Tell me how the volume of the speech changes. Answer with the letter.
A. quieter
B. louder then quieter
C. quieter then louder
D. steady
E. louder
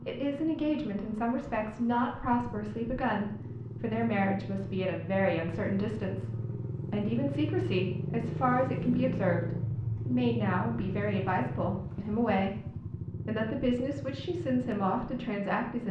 D.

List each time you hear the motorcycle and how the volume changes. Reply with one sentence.
You can hear the motorcycle from 0.0 to 15.8 s, getting louder then quieter.